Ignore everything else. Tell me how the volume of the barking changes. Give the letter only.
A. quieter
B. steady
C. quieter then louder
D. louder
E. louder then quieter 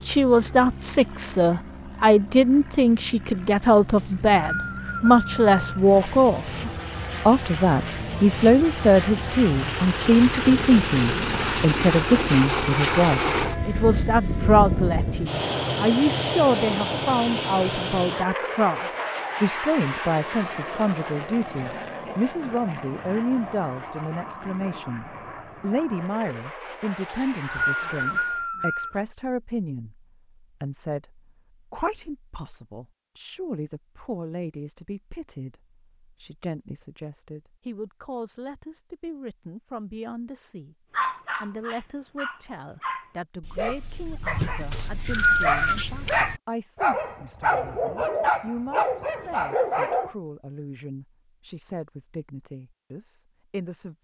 D.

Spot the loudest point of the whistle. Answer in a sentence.
The volume of the whistle peaks at 45 seconds.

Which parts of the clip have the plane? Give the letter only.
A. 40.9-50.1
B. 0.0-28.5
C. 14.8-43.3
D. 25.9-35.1
B.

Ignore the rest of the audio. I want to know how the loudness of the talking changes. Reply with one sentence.
The volume of the talking goes down.